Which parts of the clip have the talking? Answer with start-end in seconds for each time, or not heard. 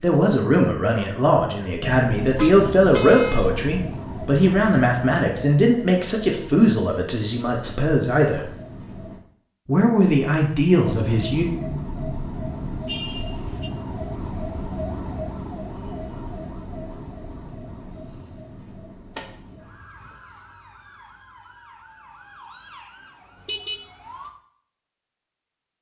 0.0-8.4, 9.7-11.4.